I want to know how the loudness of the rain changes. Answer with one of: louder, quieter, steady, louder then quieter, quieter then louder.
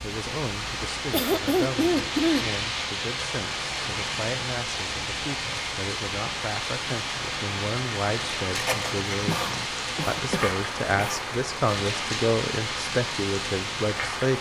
steady.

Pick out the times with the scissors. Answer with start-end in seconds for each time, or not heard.
8.5-9.7.